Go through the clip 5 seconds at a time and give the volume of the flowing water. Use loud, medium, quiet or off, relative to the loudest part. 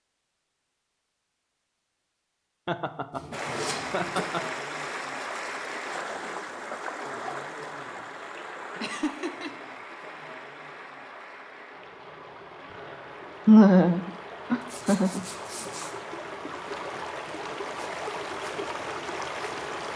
loud, loud, medium, loud.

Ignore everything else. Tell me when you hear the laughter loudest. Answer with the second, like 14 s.
14 s.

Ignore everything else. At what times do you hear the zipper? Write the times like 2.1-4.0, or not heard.
3.1-4.2, 14.6-15.9.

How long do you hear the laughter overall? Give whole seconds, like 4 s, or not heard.
4 s.